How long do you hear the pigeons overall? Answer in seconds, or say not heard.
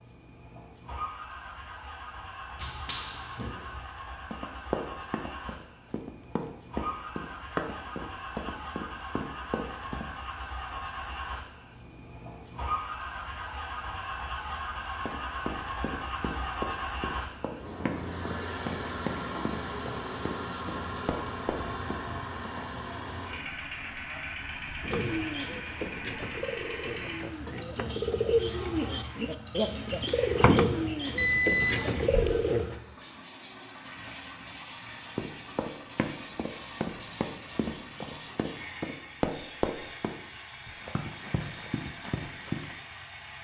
8 s.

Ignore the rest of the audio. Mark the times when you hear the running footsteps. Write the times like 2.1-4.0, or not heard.
2.5-10.1, 15.1-22.6, 35.1-42.8.